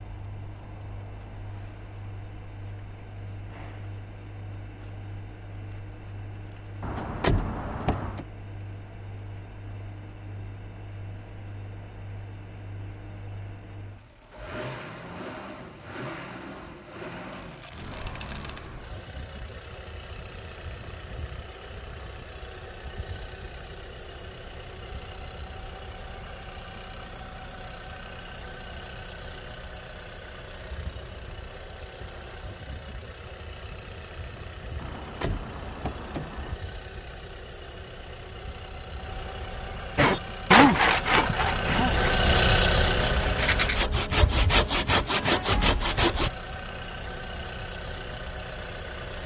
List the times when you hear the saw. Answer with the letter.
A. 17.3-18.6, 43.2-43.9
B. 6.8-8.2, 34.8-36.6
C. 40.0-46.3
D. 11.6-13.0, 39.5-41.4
C.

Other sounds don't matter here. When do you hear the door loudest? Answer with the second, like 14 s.
7 s.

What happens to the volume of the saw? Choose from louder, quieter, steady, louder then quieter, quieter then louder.
quieter then louder.